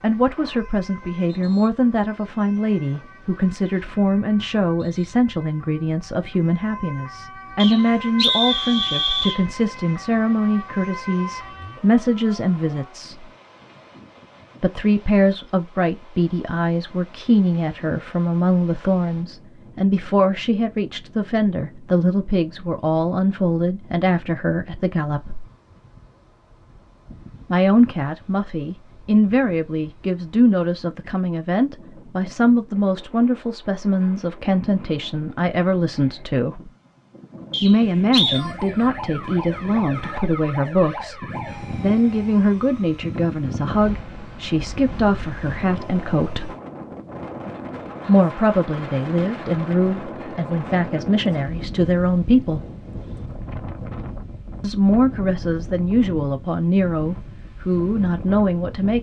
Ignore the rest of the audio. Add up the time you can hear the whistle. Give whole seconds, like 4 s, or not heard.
3 s.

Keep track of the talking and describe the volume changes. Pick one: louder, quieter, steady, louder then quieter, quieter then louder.
steady.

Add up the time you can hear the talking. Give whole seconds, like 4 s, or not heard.
51 s.